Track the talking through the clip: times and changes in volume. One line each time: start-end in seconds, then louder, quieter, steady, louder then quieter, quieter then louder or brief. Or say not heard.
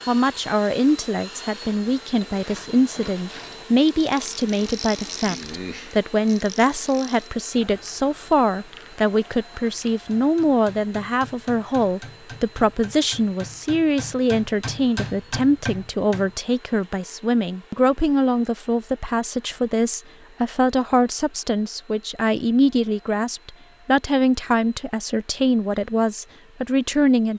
0.1-27.3 steady.